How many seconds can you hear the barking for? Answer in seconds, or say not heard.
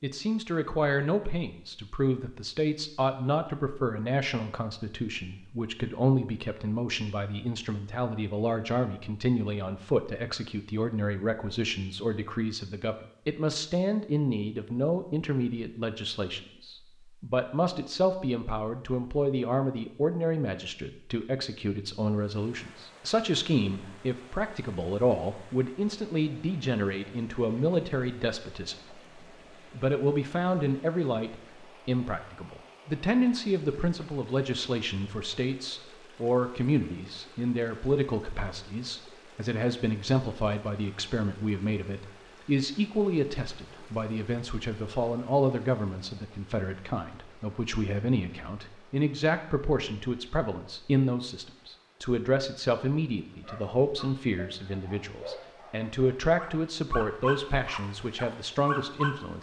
6 s.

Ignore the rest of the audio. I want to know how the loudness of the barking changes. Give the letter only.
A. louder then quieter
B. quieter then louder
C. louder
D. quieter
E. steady
C.